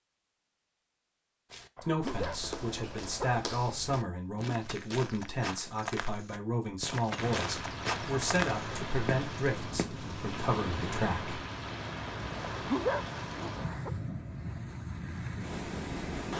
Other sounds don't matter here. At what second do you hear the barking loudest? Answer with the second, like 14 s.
13 s.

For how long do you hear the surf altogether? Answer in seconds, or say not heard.
9 s.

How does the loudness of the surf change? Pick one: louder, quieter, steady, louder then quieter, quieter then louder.
steady.